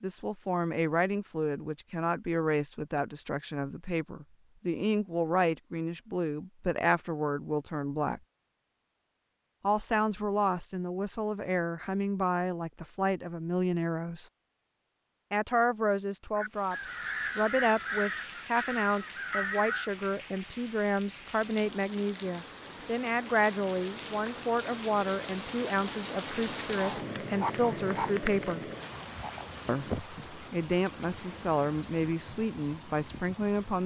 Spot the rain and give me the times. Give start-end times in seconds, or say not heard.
16.4-33.8.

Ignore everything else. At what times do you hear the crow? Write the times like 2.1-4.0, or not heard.
16.4-19.9.